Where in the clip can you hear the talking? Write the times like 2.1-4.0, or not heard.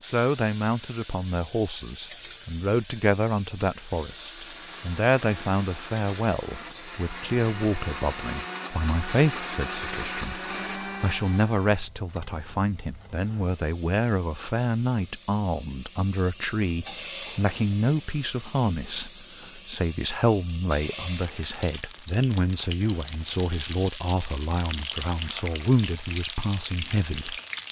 0.0-10.4, 11.0-27.6.